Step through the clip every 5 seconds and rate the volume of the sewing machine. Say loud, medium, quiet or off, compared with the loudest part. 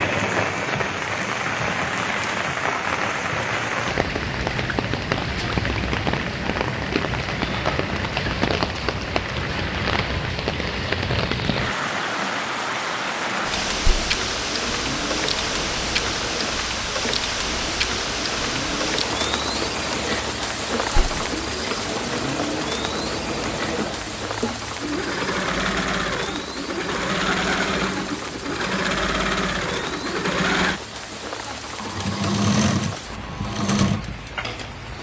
medium, medium, medium, medium, medium, loud, loud.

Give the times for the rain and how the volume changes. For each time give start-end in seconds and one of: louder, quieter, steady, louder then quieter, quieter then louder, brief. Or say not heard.
0.0-34.9 quieter.